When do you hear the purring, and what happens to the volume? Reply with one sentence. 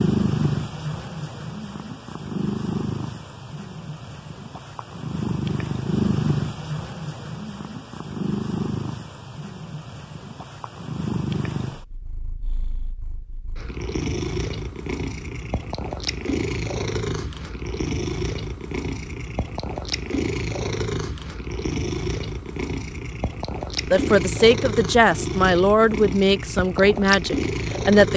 You can hear the purring from 0.0 to 28.1 s, at a steady volume.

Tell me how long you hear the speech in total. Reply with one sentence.
The speech can be heard for 4 seconds in total.